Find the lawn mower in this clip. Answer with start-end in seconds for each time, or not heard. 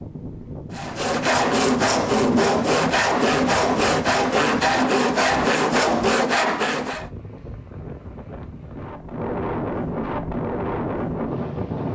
not heard.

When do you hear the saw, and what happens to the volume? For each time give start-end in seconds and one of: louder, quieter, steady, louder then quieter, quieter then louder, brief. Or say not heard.
0.7-7.1 steady.